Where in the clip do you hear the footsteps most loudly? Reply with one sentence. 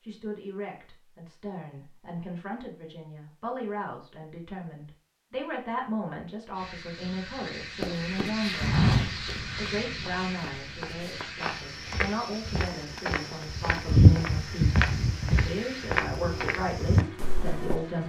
The loudest moment of the footsteps is at 14 seconds.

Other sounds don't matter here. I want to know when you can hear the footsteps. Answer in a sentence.
You can hear the footsteps from 7.8 to 17.8 s.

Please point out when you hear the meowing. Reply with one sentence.
You can't hear the meowing here.